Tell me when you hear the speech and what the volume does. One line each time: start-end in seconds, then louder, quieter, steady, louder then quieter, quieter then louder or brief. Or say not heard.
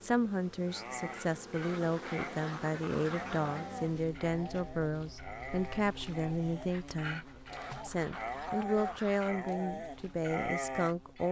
0.0-11.2 steady.